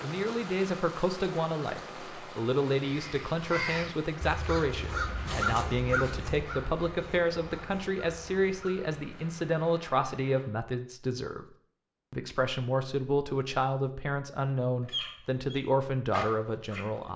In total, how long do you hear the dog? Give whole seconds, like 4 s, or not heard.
2 s.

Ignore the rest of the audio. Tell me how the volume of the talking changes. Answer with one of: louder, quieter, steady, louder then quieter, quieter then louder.
steady.